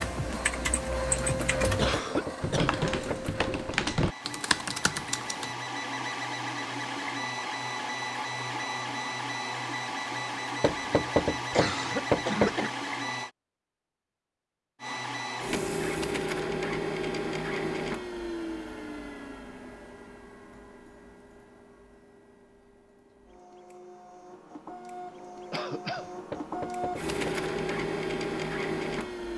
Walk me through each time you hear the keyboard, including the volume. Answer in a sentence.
You can hear the keyboard from 0.0 to 5.5 s, at a steady volume.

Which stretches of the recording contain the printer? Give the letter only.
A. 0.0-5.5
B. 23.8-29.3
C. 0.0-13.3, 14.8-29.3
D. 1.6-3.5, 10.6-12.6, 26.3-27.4
C.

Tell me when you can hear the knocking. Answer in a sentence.
The knocking can be heard from 1.6 to 3.5 s, from 10.6 to 12.6 s and from 26.3 to 27.4 s.